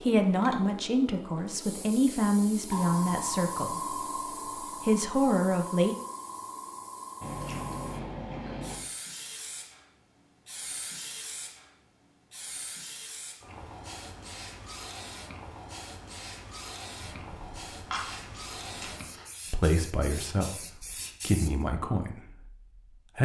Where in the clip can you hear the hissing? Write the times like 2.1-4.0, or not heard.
0.0-21.5.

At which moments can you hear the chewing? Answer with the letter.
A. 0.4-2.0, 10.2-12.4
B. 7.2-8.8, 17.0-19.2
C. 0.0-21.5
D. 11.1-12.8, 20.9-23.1
B.